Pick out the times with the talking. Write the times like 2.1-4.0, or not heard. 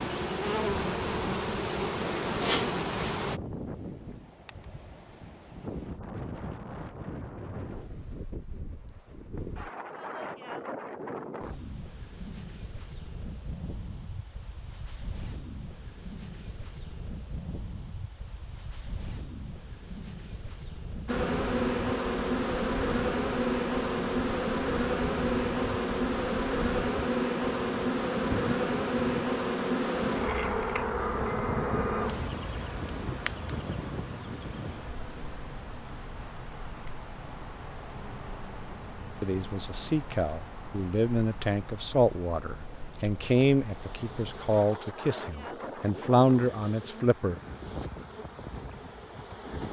39.2-47.4.